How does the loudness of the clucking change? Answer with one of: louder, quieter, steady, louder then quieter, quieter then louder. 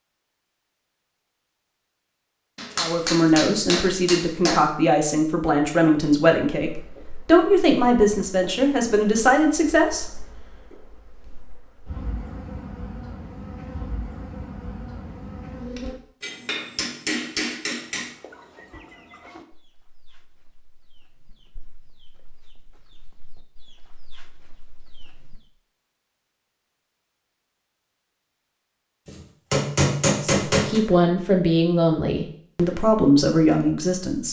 quieter then louder.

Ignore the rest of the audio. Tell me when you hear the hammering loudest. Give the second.
30 s.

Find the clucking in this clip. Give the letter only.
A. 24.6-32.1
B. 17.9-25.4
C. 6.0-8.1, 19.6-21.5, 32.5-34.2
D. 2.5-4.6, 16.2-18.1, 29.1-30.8
B.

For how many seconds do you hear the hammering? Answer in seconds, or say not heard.
6 s.